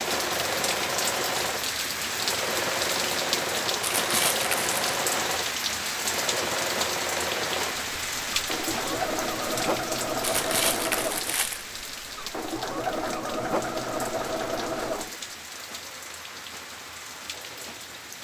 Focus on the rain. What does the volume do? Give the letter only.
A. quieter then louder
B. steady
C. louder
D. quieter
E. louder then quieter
D.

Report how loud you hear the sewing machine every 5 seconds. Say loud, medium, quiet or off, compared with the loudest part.
loud, loud, loud, quiet.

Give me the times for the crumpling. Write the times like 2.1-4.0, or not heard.
3.8-4.8, 10.2-11.7.